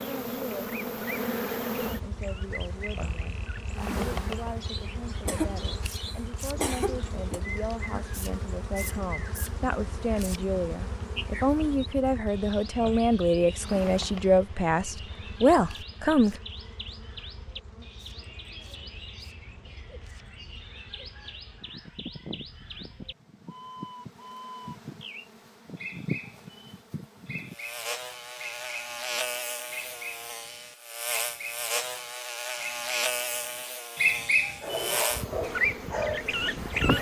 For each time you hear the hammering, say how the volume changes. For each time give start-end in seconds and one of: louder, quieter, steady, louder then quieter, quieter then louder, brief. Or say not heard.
not heard.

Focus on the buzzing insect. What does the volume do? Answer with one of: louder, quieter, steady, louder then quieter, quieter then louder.
quieter then louder.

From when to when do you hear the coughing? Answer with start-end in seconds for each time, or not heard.
5.2-7.4.